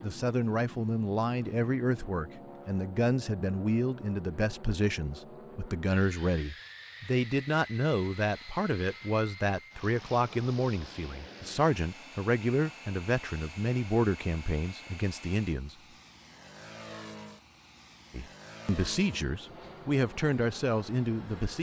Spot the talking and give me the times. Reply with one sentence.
The talking can be heard from 0.0 to 15.8 s and from 18.1 to 21.5 s.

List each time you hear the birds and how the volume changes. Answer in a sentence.
The birds can't be heard in this clip.